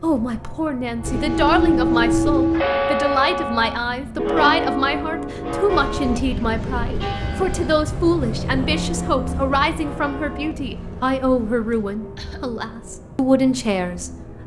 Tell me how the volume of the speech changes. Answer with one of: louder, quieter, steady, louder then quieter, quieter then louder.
steady.